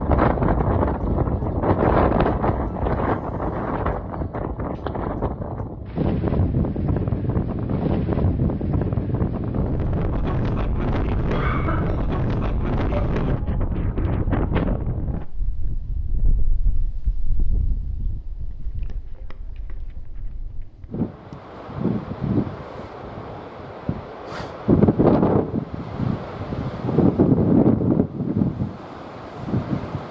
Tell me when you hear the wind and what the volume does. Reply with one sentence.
The wind can be heard from 0.0 to 30.0 s, getting quieter then louder.